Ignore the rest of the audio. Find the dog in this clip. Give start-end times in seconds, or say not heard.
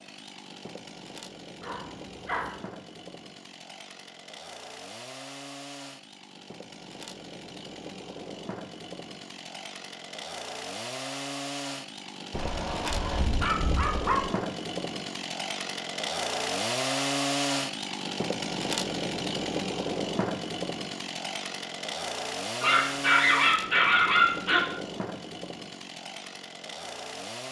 1.6-2.5, 12.3-14.3, 22.6-24.6.